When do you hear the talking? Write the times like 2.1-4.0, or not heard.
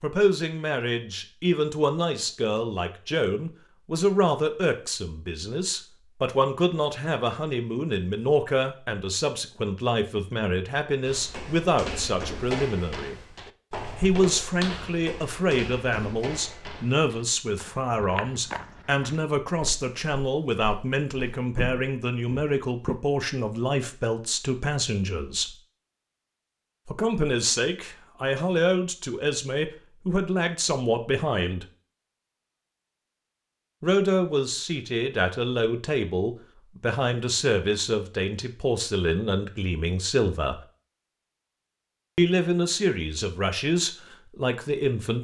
0.0-13.2, 13.9-25.6, 26.9-31.6, 33.8-40.6, 42.1-45.2.